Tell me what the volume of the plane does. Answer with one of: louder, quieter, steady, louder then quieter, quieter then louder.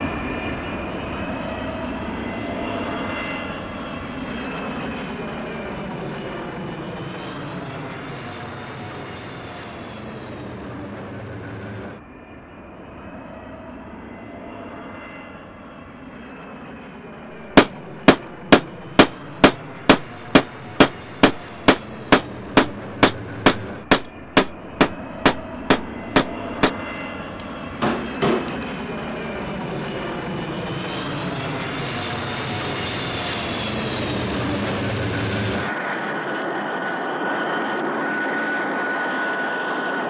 quieter then louder.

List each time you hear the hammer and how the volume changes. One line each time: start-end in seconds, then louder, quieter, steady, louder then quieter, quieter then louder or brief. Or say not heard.
17.6-27.1 steady
27.8-28.6 brief.